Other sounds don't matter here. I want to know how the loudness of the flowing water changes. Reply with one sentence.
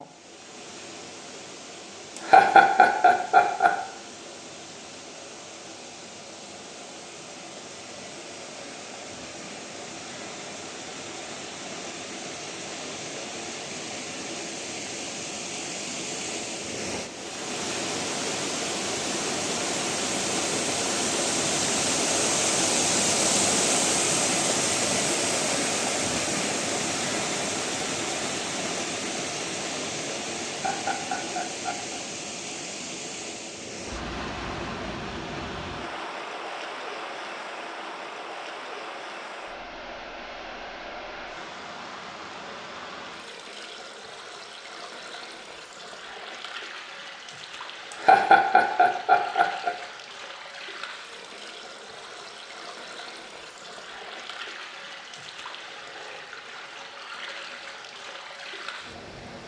The volume of the flowing water goes up, then down.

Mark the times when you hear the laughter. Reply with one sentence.
The laughter can be heard from 2.1 to 3.7 s, from 30.4 to 32.0 s and from 47.9 to 49.7 s.